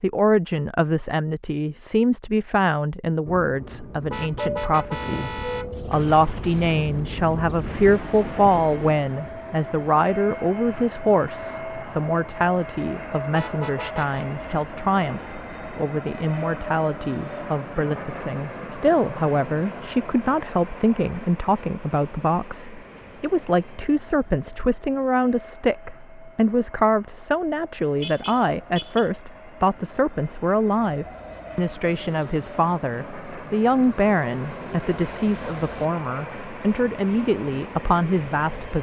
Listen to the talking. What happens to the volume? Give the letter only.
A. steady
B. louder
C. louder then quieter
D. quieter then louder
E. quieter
A.